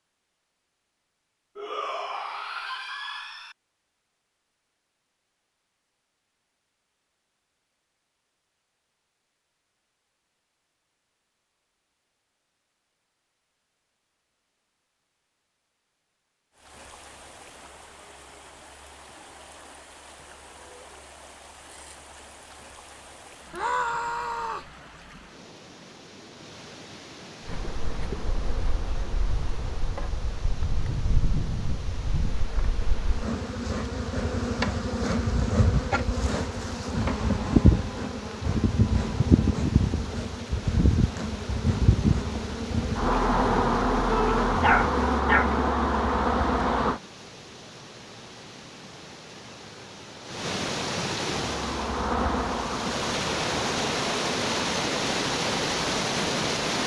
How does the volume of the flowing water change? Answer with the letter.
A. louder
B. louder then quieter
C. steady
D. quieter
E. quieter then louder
A.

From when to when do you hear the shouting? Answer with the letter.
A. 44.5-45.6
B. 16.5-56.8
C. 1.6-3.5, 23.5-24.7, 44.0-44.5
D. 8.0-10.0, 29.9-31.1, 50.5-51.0
C.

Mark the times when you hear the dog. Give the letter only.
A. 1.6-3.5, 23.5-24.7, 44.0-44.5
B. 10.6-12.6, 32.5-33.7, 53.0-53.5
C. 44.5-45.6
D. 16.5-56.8
C.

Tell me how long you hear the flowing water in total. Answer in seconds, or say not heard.
40 s.